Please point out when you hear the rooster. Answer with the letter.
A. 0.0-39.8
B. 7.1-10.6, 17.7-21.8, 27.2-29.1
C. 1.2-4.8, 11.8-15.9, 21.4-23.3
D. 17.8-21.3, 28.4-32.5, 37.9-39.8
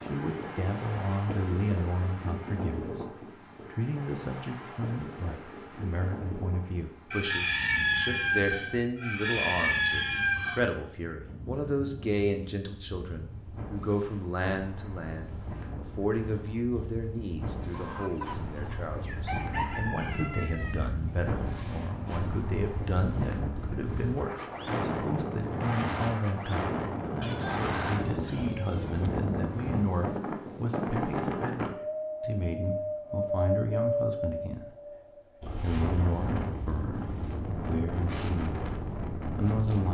B.